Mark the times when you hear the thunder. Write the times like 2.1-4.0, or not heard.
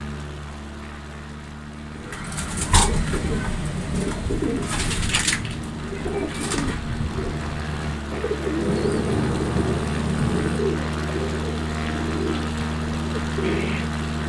8.6-10.6.